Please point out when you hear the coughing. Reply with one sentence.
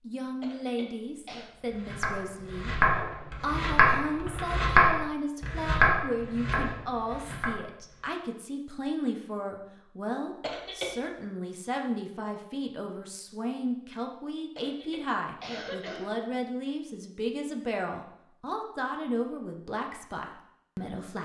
The coughing can be heard from 0.4 to 1.5 s, from 10.4 to 10.9 s and from 14.6 to 16.1 s.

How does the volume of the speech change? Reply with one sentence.
The volume of the speech stays about the same.